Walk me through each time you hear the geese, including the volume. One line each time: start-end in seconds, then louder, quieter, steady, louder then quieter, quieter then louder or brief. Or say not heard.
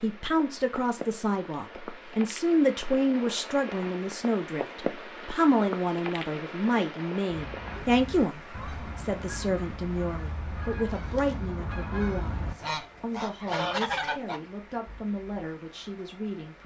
7.3-14.4 louder.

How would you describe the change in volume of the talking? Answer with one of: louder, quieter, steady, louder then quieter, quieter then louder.
quieter.